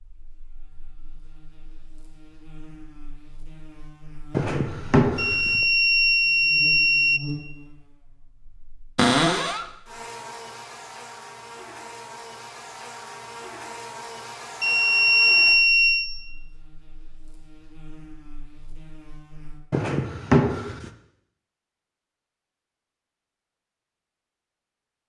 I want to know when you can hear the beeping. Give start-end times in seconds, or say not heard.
5.2-7.2, 14.6-16.1.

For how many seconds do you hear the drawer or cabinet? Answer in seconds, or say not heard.
3 s.